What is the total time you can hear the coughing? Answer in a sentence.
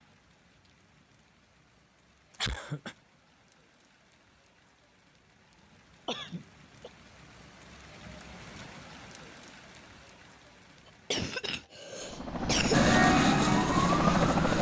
The coughing can be heard for 3 seconds in total.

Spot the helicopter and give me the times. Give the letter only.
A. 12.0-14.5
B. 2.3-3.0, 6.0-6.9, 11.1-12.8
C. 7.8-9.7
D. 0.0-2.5
A.